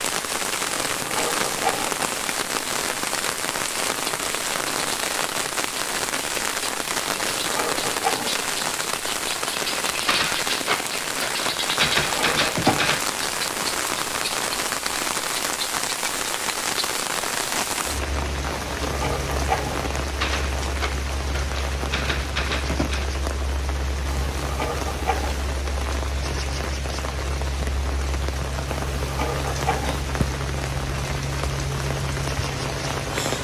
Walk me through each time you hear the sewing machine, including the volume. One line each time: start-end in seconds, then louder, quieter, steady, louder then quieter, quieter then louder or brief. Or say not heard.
not heard.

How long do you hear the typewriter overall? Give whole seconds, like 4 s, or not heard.
6 s.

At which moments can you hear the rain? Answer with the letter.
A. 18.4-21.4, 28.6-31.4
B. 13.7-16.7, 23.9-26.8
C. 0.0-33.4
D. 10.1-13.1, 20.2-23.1
C.